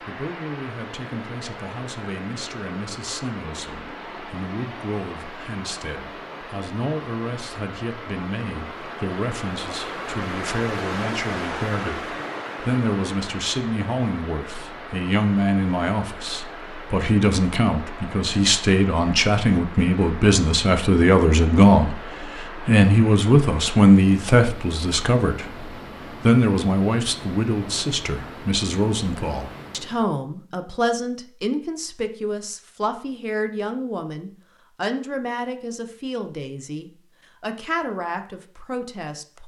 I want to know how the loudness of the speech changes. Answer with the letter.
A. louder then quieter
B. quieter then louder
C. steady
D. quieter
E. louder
A.